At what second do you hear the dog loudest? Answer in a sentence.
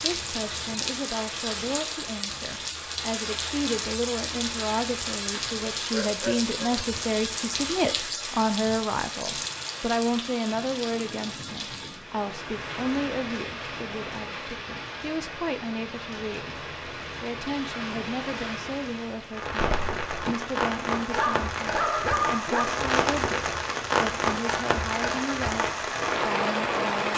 The loudest moment of the dog is at 22 seconds.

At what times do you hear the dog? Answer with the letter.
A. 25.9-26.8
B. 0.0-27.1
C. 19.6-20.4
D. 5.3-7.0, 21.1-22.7
D.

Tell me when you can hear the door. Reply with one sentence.
The door can be heard from 19.6 to 20.4 s.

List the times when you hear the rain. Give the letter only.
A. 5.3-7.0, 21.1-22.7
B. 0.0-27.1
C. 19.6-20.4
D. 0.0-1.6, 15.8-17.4
B.